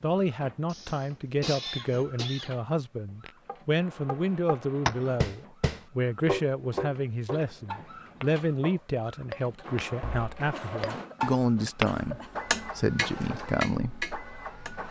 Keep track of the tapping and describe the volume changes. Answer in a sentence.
The loudness of the tapping goes down, then up.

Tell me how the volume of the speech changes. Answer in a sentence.
The volume of the speech stays about the same.